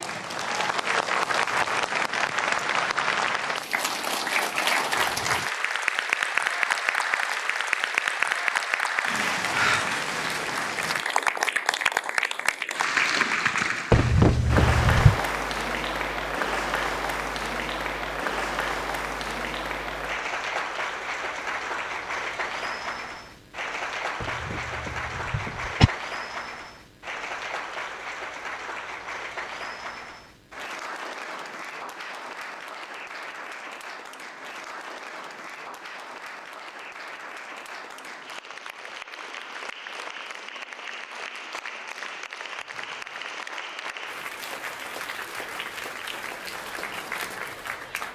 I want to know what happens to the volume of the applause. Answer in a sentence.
The volume of the applause goes down.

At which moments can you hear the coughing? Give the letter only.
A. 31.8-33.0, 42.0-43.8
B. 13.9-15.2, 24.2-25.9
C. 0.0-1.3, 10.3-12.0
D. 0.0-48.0
B.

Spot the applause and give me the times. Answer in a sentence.
The applause can be heard from 0.0 to 48.0 s.